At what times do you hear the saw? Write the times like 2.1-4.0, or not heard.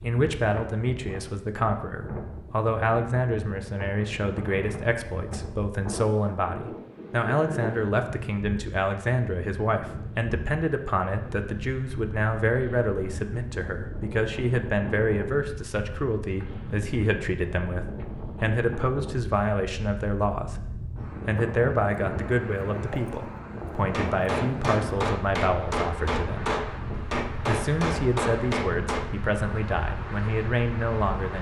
not heard.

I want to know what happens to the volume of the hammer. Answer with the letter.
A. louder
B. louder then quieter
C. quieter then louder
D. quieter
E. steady
E.